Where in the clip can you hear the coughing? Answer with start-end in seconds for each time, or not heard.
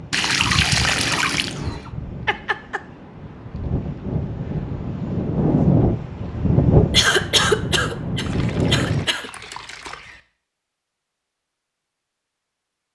2.2-2.8, 6.9-9.3.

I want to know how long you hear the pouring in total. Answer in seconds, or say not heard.
4 s.